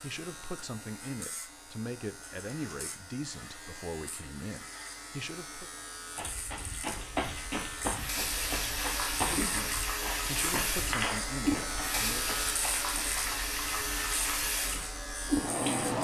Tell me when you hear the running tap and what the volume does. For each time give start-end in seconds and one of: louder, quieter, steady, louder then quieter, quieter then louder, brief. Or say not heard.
7.8-15.9 steady.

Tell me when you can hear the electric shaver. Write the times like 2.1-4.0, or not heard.
0.0-15.9.